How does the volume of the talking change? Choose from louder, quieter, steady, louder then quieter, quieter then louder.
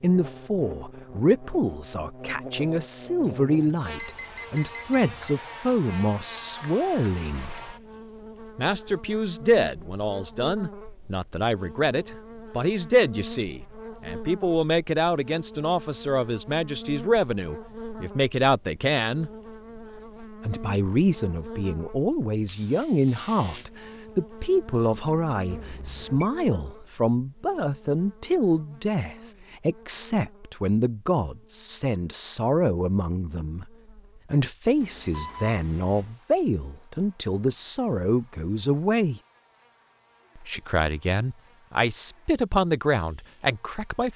steady.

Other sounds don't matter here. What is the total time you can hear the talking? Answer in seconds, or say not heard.
41 s.